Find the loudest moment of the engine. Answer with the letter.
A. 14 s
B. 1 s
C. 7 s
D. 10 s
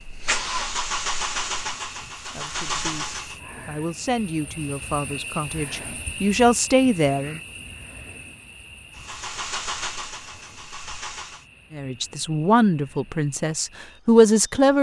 B.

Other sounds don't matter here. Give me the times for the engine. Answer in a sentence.
You can hear the engine from 0.0 to 3.4 s and from 8.9 to 11.4 s.